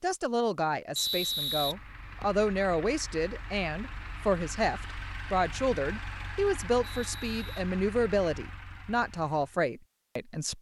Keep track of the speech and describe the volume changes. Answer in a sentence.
The loudness of the speech stays about the same.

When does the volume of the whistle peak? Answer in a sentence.
The loudest moment of the whistle is at 1 second.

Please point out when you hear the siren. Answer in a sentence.
The siren can't be heard in this clip.